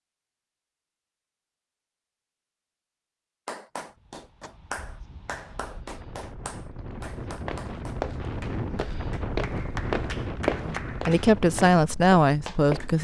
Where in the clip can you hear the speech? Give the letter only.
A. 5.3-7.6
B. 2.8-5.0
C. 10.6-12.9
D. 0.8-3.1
C.